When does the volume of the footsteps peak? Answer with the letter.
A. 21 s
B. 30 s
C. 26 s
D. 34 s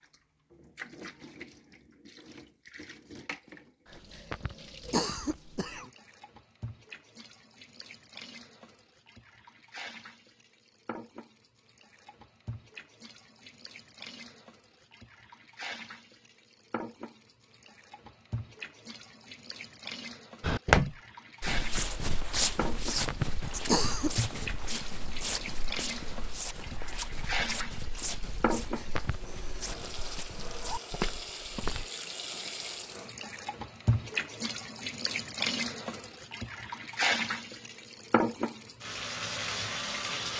A.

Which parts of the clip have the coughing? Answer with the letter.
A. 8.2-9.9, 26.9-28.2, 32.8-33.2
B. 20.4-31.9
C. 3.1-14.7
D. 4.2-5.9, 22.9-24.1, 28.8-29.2
D.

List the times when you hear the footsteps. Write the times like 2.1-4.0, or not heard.
20.4-31.9.